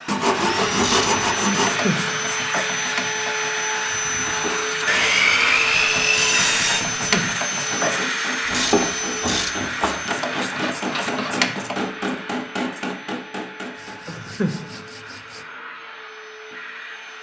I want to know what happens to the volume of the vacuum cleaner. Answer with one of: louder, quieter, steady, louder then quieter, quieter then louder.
quieter.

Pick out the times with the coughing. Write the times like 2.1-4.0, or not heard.
1.5-2.7, 7.0-8.1, 14.1-14.8.